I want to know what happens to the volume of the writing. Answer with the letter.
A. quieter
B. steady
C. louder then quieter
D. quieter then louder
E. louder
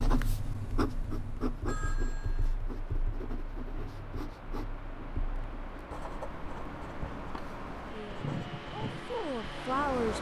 A.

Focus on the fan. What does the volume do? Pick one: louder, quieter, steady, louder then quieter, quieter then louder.
louder.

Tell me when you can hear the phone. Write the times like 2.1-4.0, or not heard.
1.6-2.6.